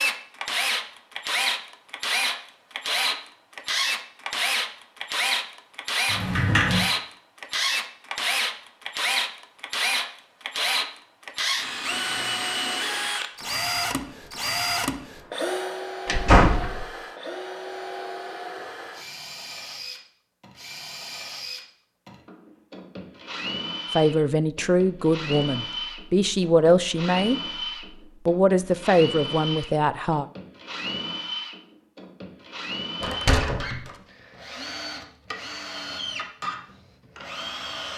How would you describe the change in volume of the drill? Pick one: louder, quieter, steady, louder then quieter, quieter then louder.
quieter.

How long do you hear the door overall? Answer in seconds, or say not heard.
2 s.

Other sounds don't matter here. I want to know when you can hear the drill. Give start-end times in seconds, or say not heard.
0.0-37.9.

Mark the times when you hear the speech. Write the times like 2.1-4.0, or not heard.
23.9-27.4, 28.2-30.2.